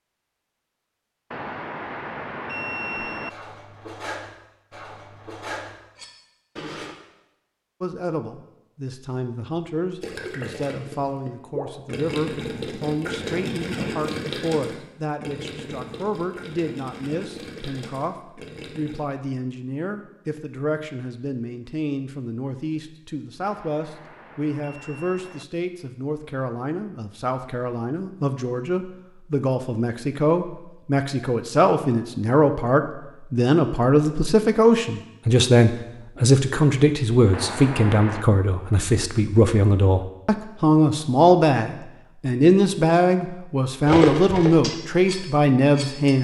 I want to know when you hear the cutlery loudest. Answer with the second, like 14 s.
44 s.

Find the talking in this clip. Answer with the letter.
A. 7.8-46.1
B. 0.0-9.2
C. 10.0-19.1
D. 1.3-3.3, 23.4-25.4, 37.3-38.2
A.